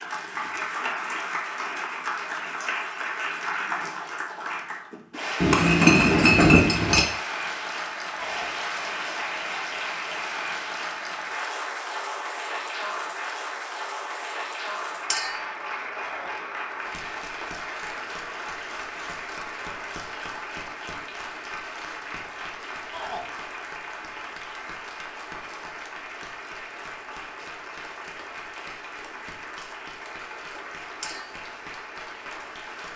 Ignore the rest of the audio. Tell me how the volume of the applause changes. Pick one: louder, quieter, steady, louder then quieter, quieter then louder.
quieter.